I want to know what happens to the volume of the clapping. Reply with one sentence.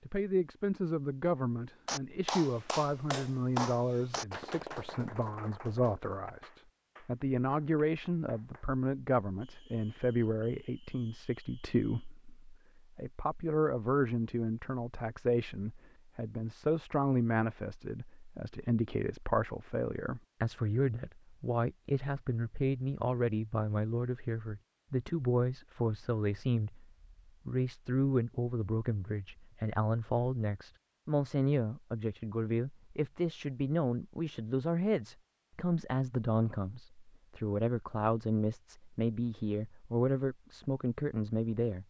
The loudness of the clapping goes down.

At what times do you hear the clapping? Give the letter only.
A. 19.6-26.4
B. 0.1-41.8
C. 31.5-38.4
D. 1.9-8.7
D.